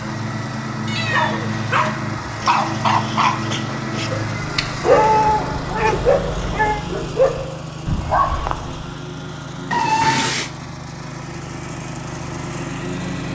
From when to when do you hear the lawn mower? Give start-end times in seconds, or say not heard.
0.0-13.2.